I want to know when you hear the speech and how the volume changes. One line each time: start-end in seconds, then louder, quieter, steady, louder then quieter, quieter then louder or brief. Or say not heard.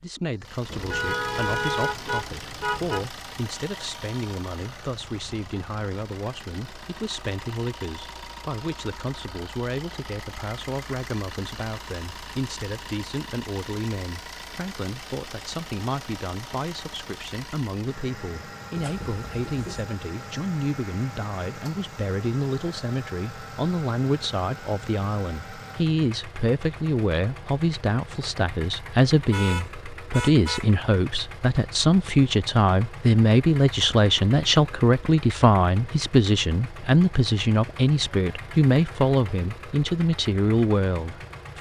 0.0-41.5 louder.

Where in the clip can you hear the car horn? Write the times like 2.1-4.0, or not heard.
0.7-3.1, 18.8-19.9, 29.3-30.7.